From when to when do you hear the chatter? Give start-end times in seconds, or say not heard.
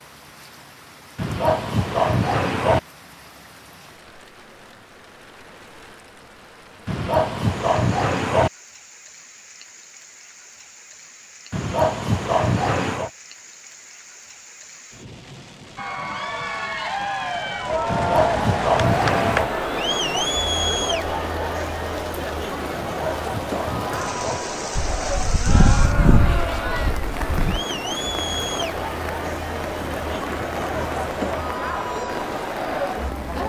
15.8-33.4.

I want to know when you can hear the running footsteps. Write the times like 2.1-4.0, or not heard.
not heard.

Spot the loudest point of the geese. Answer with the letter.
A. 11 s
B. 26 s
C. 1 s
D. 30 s
B.